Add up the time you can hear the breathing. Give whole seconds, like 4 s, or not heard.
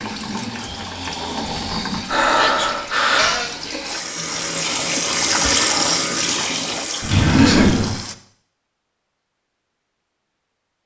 3 s.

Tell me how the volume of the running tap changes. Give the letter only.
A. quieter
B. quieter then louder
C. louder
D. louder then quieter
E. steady
D.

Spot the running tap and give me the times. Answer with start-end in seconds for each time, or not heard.
0.0-8.2.